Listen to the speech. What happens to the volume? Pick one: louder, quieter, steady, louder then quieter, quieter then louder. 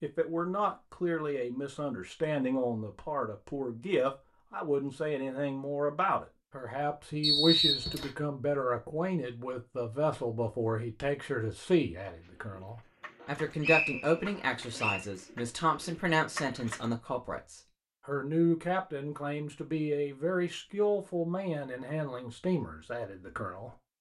steady.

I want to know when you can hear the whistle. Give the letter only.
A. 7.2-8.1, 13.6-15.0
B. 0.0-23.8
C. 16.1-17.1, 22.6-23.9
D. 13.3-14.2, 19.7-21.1
A.